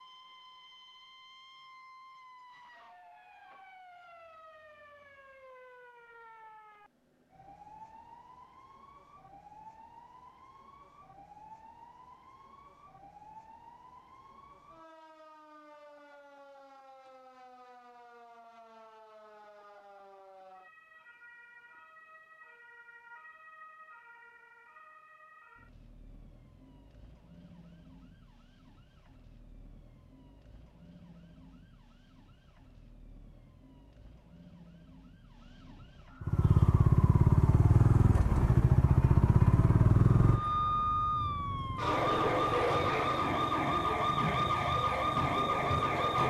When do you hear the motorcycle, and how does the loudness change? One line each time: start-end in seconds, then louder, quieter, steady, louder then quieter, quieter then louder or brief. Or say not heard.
36.2-46.2 quieter.